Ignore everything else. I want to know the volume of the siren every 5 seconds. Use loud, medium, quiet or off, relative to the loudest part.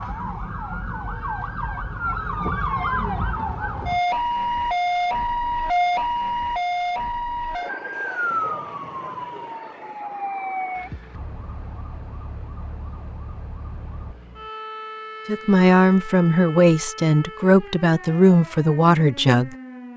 loud, loud, medium, quiet.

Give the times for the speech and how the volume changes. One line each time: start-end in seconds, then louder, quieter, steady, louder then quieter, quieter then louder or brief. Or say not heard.
15.2-19.9 steady.